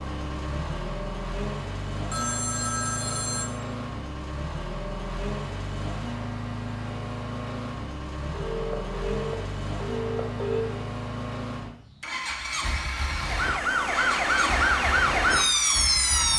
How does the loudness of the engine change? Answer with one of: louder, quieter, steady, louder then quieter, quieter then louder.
steady.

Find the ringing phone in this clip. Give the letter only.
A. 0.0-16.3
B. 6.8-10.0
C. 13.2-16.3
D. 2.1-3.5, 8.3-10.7
D.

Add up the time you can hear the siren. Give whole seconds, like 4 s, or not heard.
3 s.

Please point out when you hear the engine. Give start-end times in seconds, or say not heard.
0.0-16.3.